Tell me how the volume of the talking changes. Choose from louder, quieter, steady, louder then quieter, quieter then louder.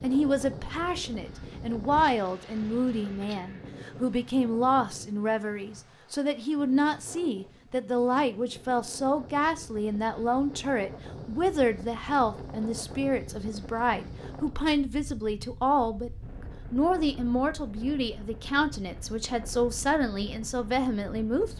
steady.